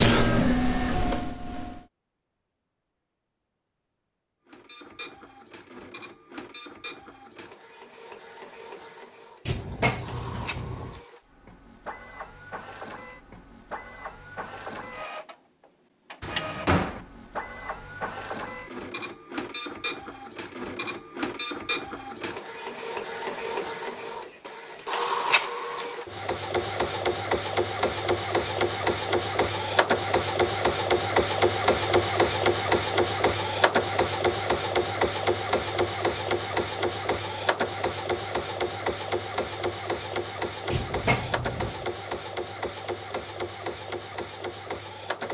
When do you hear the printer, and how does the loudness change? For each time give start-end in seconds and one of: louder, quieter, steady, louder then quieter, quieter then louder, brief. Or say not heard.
0.0-1.8 brief
4.5-45.2 louder then quieter.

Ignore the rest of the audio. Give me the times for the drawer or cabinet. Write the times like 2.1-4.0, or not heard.
9.4-11.0, 16.2-17.0, 40.7-41.9.